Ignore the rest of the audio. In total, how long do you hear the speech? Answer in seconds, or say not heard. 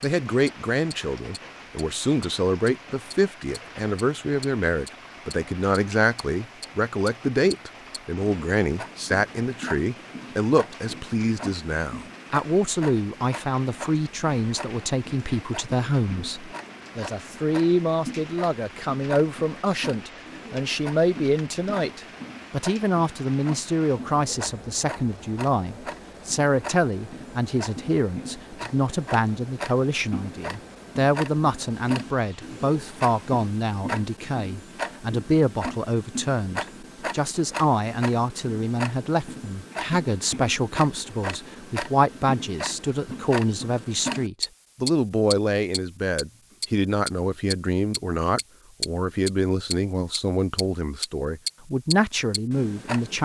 53 s.